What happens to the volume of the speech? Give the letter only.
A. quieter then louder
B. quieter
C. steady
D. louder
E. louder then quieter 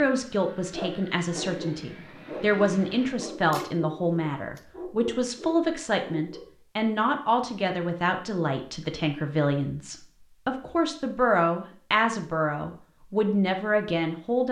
C.